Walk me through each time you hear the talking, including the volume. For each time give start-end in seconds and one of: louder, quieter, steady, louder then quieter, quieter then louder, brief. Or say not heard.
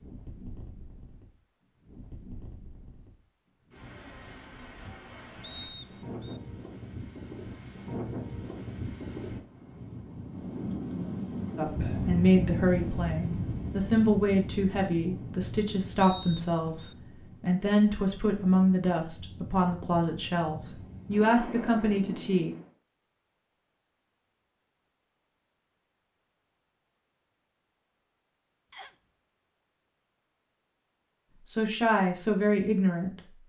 11.6-22.6 steady
31.4-33.2 brief.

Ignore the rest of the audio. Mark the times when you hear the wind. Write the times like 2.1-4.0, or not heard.
0.0-22.7.